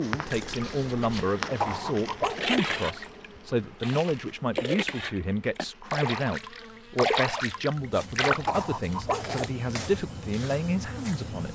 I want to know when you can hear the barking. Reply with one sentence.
The barking can be heard from 1.6 to 2.6 s and from 8.4 to 9.5 s.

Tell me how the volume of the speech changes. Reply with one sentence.
The loudness of the speech stays about the same.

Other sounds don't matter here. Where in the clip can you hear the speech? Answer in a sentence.
The speech can be heard from 0.0 to 11.5 s.